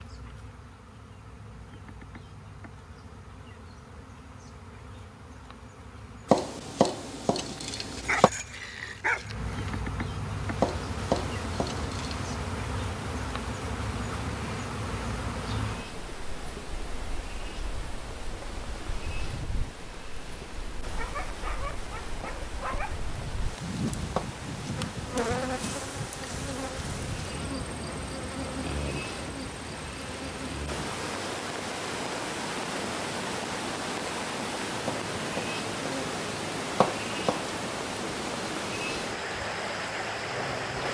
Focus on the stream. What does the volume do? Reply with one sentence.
The volume of the stream goes up.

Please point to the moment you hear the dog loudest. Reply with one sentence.
The volume of the dog peaks at 9 seconds.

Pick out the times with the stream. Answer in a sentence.
The stream can be heard from 10.3 to 40.8 s.